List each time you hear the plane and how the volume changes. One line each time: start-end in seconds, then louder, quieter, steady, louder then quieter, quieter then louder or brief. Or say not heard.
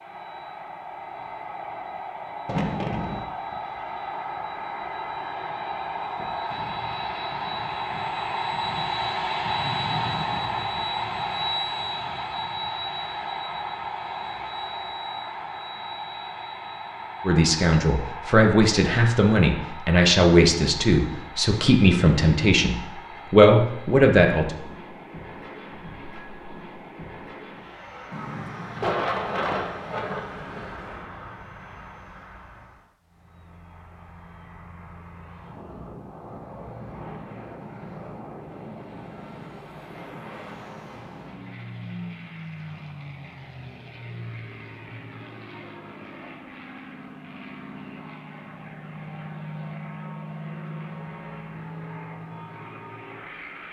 0.0-53.6 quieter.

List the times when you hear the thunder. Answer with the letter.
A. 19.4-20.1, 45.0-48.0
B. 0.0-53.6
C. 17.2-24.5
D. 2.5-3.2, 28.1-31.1
D.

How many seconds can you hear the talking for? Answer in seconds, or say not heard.
7 s.